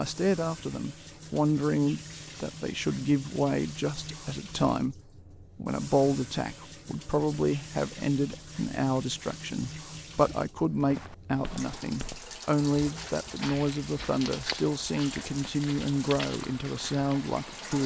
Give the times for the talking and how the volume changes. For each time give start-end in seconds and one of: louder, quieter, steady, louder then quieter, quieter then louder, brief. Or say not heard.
0.0-17.8 steady.